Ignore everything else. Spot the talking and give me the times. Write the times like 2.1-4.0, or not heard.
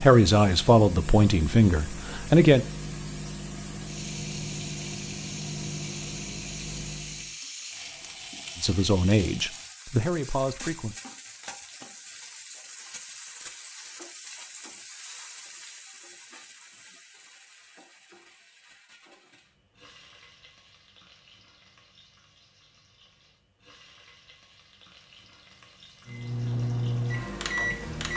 0.0-2.6, 8.6-10.9.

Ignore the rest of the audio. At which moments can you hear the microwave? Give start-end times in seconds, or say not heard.
0.0-7.3, 26.1-28.1.